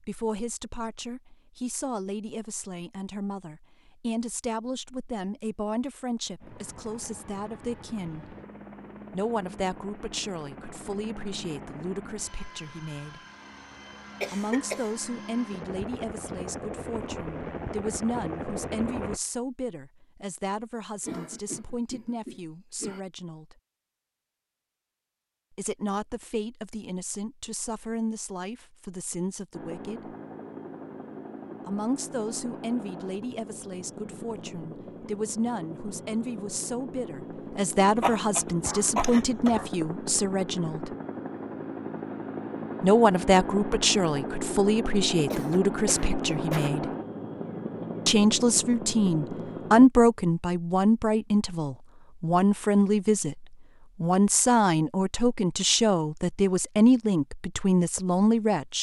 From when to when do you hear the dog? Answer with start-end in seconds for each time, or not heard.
38.0-39.7.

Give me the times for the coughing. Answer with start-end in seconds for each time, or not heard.
14.2-14.9, 21.1-23.0, 45.3-46.7.